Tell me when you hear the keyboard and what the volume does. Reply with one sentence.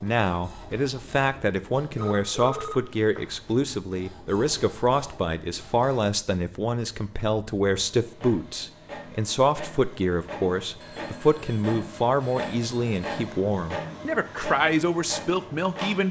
The keyboard can't be heard in this clip.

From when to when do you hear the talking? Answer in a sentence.
The talking can be heard from 0.0 to 16.0 s.